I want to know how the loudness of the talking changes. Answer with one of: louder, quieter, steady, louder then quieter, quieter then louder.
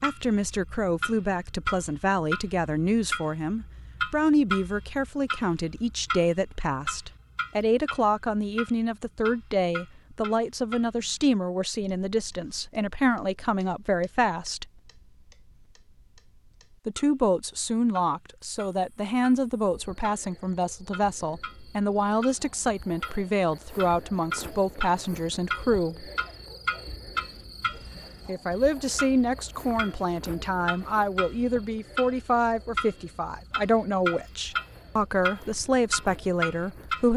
steady.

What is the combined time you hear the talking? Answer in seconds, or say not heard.
33 s.